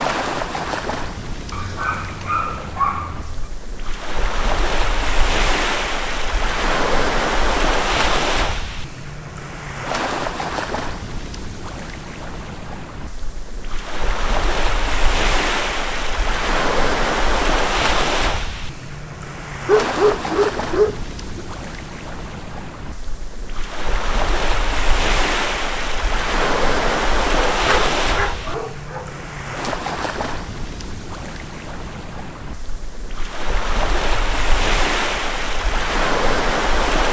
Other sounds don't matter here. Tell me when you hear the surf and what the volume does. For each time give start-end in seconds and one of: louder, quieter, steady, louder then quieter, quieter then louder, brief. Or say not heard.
0.0-37.0 steady.